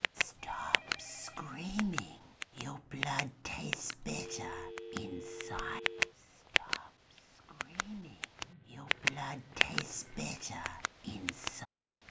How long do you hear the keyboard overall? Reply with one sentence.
You can't hear the keyboard here.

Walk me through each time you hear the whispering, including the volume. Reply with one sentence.
The whispering can be heard from 0.1 to 11.7 s, getting quieter then louder.